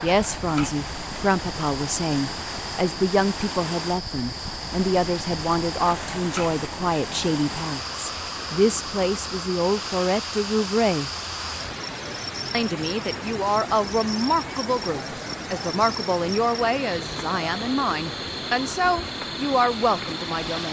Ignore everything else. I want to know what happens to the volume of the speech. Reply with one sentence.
The volume of the speech stays about the same.